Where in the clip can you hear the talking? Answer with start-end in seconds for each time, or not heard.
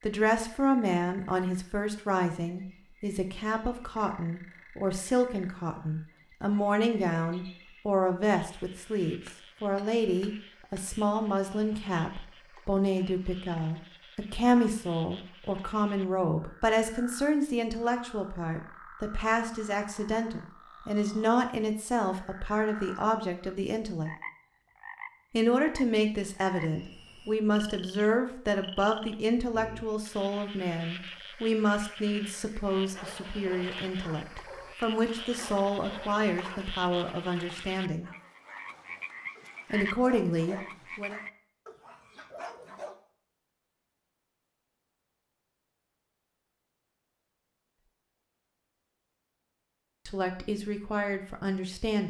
0.1-24.1, 25.3-38.1, 39.7-41.2, 50.0-52.0.